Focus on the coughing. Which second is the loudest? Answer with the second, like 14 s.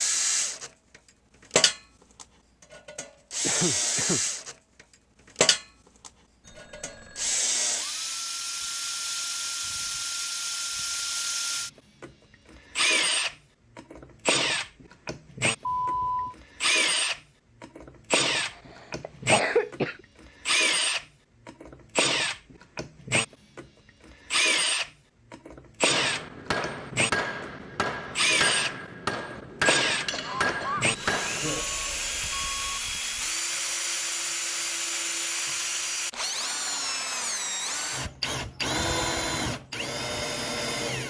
19 s.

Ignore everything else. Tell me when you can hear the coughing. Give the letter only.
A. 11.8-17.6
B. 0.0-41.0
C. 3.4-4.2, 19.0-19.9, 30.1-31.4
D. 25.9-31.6
C.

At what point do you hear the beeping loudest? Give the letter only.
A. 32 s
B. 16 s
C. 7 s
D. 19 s
B.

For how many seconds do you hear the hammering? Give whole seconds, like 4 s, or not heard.
6 s.